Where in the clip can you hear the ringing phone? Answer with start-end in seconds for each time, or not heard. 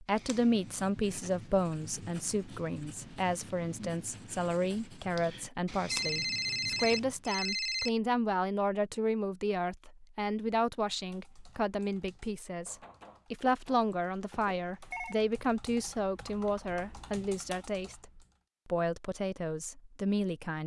5.9-7.9, 13.4-15.2.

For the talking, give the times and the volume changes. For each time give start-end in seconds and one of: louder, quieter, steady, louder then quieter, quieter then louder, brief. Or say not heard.
0.0-20.6 steady.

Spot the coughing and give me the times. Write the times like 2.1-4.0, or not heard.
not heard.